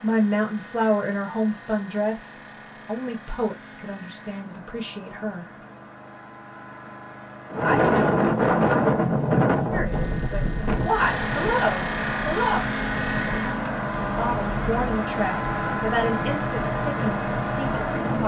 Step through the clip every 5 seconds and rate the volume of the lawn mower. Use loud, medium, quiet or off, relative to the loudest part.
quiet, quiet, loud, loud.